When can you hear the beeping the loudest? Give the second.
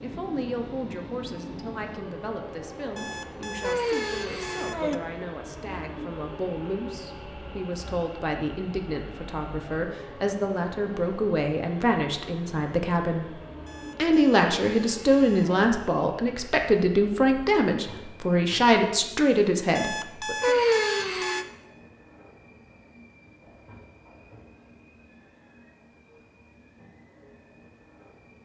21 s.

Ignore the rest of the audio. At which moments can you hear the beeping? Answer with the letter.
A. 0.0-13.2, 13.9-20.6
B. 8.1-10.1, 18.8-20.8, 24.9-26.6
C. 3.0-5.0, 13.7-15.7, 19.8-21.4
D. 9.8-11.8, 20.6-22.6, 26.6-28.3
C.